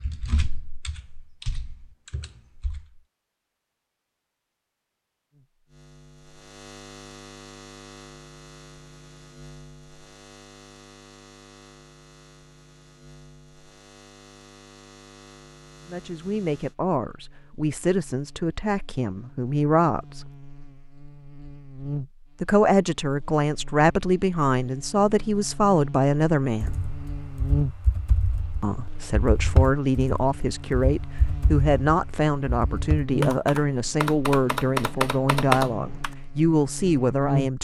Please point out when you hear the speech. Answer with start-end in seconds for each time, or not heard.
15.8-20.3, 22.4-26.8, 28.6-37.5.